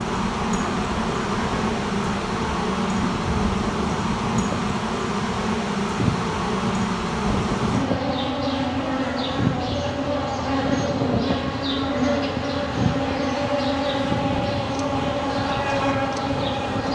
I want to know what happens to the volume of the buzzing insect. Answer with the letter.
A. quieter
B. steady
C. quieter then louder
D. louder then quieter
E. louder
B.